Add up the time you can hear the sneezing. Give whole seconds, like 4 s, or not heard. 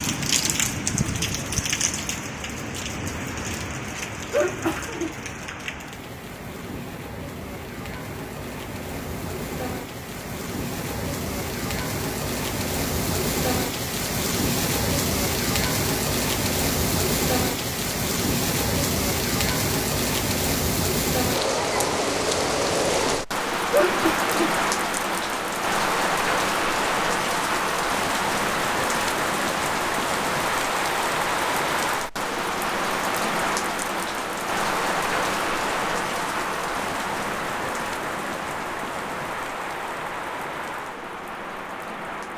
2 s.